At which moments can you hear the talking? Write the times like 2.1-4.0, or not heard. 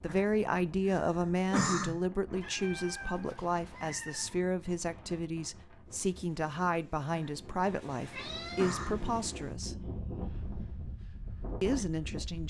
0.0-9.8, 11.6-12.4.